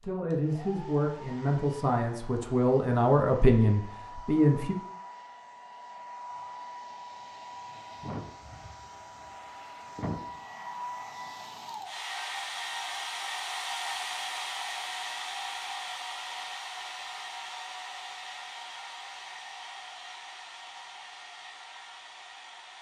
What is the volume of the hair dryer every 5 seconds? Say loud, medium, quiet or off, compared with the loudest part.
medium, medium, loud, loud, medium.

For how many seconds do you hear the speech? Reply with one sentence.
You can hear the speech for 5 seconds altogether.